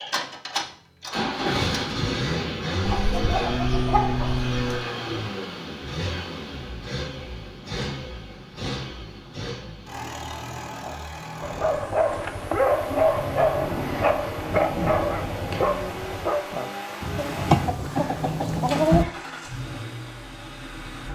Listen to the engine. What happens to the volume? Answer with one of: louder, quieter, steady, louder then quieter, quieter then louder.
quieter.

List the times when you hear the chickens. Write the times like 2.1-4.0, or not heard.
2.9-4.8, 17.1-19.1.